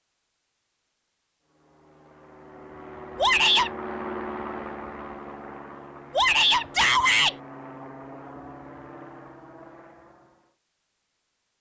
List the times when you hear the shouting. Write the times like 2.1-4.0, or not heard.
3.1-3.7, 6.1-7.3.